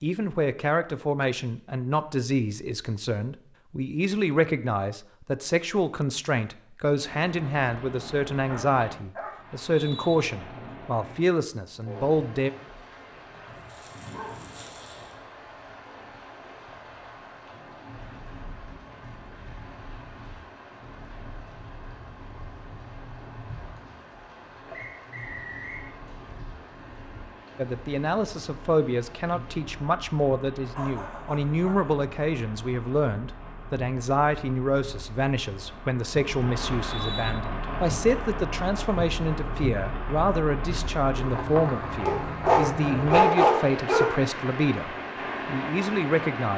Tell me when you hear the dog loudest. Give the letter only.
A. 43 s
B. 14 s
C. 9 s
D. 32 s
A.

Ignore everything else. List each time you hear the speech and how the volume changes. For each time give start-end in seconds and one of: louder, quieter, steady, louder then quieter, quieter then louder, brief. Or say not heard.
0.0-12.5 steady
27.6-46.5 steady.